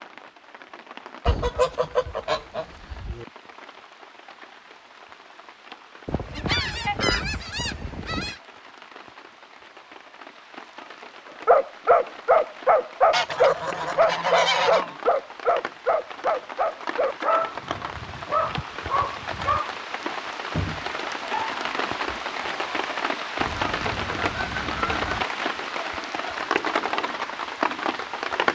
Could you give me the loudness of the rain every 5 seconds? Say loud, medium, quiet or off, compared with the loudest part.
quiet, quiet, quiet, medium, loud, loud.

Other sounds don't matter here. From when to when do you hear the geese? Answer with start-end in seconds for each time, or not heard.
1.2-3.2, 6.0-8.4, 13.1-14.9, 17.6-19.6, 23.4-25.2.